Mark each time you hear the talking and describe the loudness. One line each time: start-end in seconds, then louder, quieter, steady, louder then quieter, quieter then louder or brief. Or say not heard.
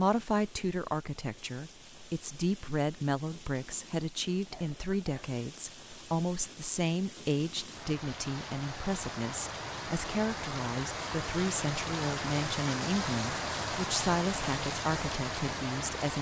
0.0-16.1 steady.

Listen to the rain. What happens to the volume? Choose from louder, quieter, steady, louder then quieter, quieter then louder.
louder.